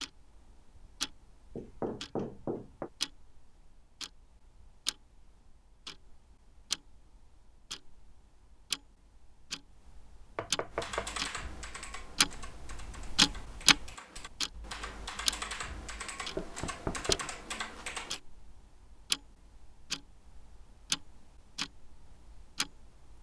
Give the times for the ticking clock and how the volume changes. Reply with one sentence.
The ticking clock can be heard from 0.0 to 23.1 s, getting louder then quieter.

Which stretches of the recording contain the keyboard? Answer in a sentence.
The keyboard can be heard from 10.7 to 18.2 s.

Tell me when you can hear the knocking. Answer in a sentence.
The knocking can be heard from 1.6 to 2.9 s, from 10.3 to 11.1 s and from 16.4 to 17.2 s.